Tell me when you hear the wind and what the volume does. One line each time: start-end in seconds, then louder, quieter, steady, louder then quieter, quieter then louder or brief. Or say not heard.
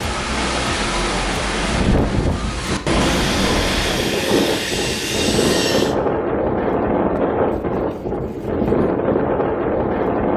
0.0-10.3 steady.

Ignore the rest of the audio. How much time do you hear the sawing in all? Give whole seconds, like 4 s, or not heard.
3 s.